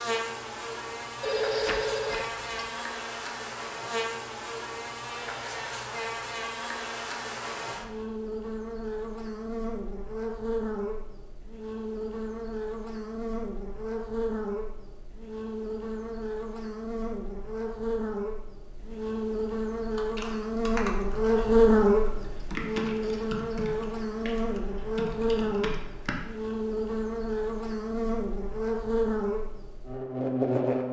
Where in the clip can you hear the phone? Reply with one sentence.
You can hear the phone from 1.2 to 2.5 s.